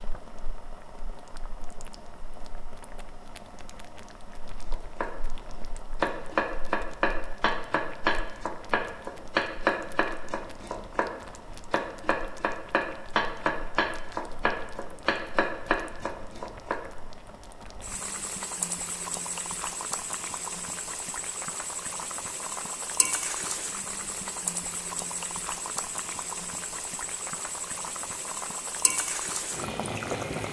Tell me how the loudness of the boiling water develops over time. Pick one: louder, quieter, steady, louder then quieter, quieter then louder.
louder.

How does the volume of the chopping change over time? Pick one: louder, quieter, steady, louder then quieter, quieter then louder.
steady.